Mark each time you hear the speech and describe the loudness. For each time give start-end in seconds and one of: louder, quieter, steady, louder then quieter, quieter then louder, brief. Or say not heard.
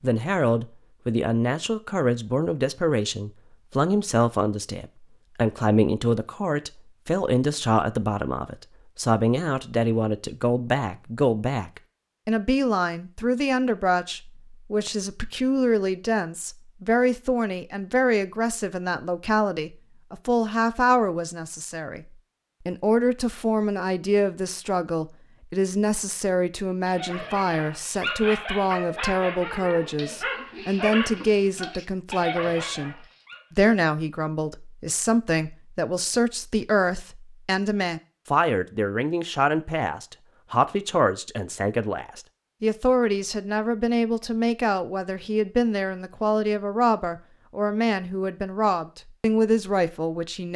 0.0-50.5 steady.